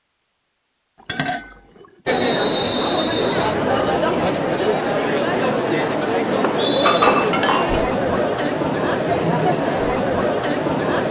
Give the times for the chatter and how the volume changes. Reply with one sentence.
The chatter can be heard from 2.0 to 11.0 s, at a steady volume.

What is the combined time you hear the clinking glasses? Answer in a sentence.
You can hear the clinking glasses for 2 seconds altogether.